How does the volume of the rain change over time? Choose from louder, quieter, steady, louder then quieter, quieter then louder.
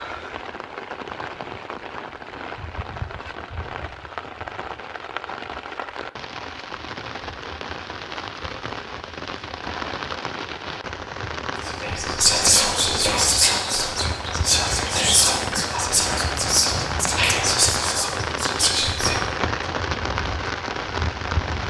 louder.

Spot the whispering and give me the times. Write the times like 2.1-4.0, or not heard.
11.7-19.2.